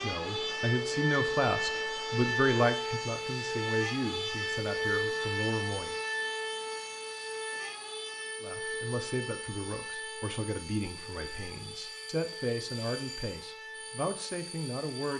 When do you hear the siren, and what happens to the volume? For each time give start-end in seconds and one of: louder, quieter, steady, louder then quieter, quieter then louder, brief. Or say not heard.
0.0-15.1 quieter.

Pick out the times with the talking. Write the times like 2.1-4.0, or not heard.
0.0-6.0, 8.4-15.1.